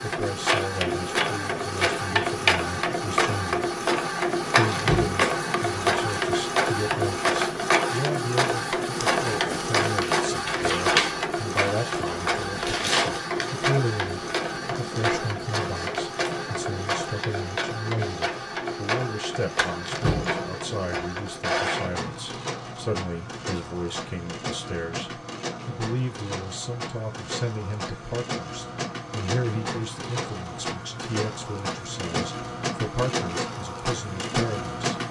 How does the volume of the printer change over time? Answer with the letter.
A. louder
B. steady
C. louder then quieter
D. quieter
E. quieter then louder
D.